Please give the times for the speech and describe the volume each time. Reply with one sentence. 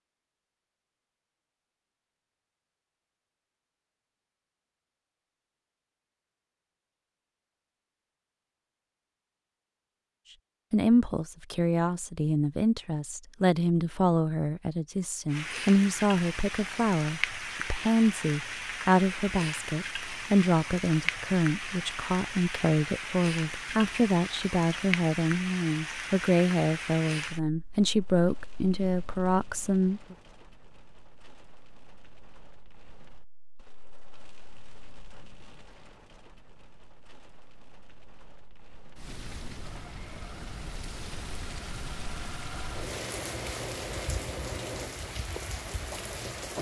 The speech can be heard from 10.7 to 30.1 s, at a steady volume.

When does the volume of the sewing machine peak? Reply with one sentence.
The loudest moment of the sewing machine is at 44 seconds.